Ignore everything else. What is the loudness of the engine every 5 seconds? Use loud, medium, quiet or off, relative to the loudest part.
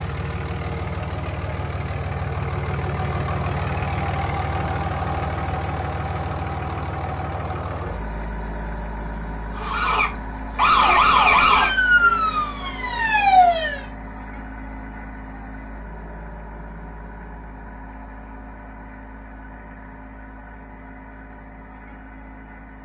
loud, loud, medium, quiet, quiet.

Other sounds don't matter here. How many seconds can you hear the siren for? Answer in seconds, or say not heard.
4 s.